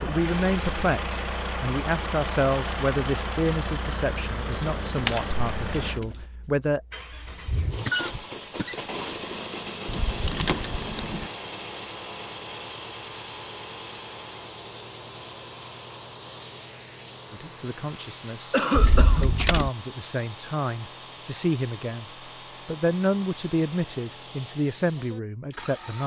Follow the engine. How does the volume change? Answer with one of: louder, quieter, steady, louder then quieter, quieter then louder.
quieter.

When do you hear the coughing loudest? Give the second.
19 s.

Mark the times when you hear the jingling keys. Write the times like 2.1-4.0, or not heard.
4.5-6.2, 9.8-11.2, 18.7-19.7.